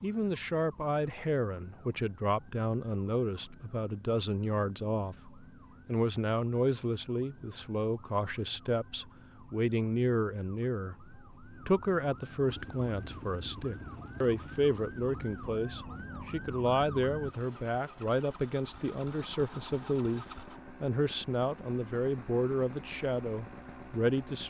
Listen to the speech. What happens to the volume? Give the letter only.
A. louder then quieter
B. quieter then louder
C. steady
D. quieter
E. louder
C.